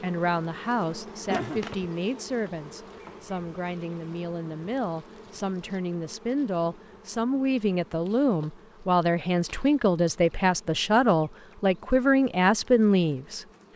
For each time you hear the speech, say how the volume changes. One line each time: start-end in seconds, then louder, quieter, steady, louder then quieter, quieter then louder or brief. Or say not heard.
0.0-13.4 louder.